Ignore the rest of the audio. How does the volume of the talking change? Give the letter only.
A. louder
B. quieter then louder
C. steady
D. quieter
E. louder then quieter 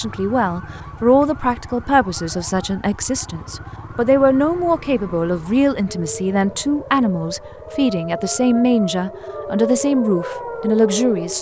C.